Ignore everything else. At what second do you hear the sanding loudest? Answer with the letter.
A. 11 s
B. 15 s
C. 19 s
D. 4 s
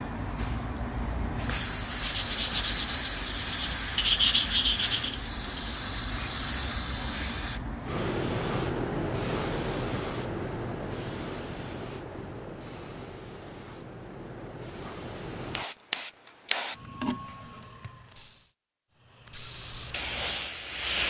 D.